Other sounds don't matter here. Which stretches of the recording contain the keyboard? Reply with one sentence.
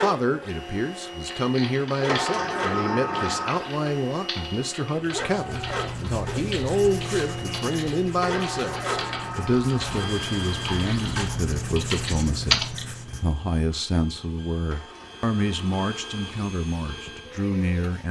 You can hear the keyboard from 1.2 to 12.8 s.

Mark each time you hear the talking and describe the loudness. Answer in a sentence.
You can hear the talking from 0.0 to 18.0 s, at a steady volume.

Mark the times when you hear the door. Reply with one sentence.
You can hear the door from 2.0 to 3.7 s, from 8.2 to 10.2 s and from 14.7 to 16.2 s.